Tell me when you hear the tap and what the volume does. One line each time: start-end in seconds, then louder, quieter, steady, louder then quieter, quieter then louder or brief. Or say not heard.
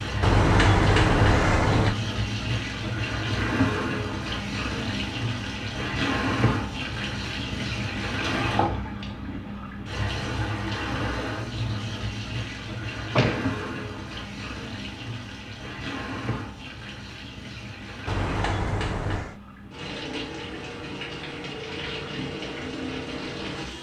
0.0-23.7 quieter.